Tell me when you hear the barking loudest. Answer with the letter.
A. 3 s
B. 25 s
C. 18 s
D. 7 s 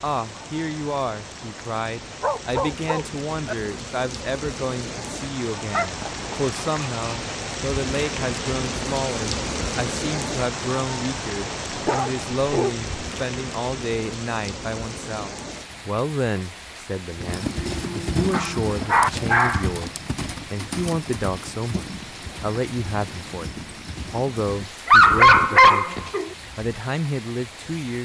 B.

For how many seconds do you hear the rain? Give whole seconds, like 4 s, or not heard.
28 s.